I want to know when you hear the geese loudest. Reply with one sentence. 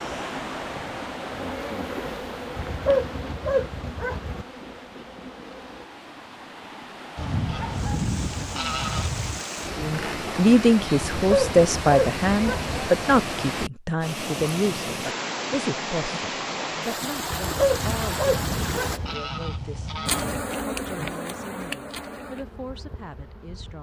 The loudest moment of the geese is at 8 seconds.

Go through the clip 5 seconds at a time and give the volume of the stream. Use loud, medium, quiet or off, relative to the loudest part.
medium, medium, loud, loud, off.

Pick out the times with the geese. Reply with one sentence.
You can hear the geese from 7.2 to 9.4 s and from 17.6 to 20.4 s.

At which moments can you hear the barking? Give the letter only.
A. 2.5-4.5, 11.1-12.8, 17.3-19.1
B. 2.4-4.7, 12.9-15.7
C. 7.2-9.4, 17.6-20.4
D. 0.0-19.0
A.